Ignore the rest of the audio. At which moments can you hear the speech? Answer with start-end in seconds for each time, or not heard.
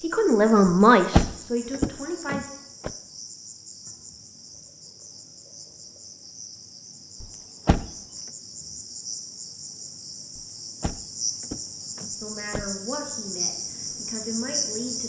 0.0-2.5, 12.1-15.0.